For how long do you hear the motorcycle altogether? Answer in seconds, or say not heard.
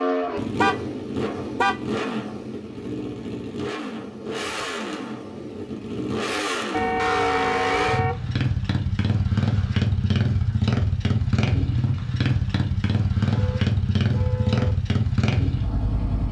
16 s.